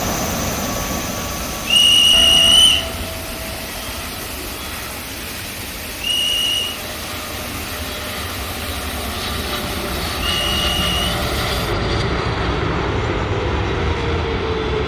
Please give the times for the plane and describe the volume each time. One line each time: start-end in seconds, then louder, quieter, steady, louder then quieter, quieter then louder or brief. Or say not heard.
0.0-14.8 quieter then louder.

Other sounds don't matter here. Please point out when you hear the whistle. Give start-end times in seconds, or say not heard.
1.6-2.9, 6.0-6.8, 10.2-11.2.